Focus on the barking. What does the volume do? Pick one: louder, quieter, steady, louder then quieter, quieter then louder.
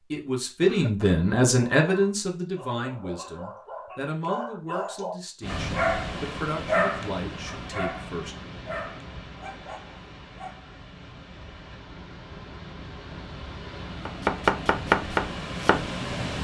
louder then quieter.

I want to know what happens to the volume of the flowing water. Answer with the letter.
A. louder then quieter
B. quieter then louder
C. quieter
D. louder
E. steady
B.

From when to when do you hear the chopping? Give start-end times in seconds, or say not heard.
14.1-16.3.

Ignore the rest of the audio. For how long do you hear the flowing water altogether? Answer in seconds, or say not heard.
11 s.